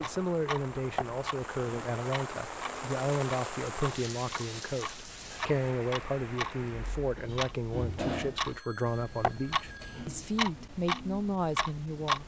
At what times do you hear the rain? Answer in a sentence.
The rain can be heard from 0.0 to 7.2 s.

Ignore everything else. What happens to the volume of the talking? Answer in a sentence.
The loudness of the talking stays about the same.